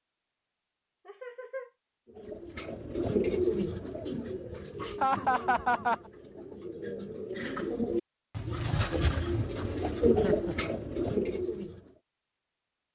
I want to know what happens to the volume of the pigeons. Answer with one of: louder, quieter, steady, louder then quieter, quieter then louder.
quieter then louder.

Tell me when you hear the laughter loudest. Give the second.
5 s.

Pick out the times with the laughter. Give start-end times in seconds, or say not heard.
1.1-1.7, 5.0-6.0, 10.1-10.7.